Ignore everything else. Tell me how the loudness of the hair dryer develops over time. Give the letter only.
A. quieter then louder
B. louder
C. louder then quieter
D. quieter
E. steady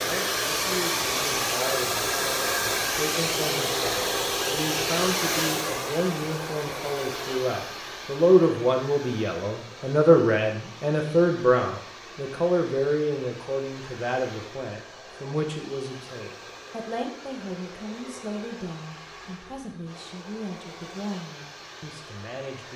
D.